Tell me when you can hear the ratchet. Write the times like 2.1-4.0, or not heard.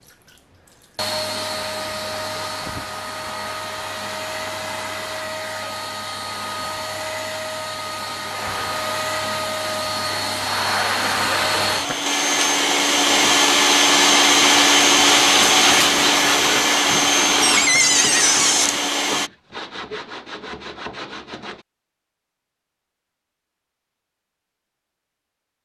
not heard.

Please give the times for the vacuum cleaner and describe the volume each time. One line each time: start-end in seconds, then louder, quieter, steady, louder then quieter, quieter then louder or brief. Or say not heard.
0.0-19.3 louder.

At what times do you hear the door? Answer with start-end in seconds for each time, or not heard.
17.4-18.8.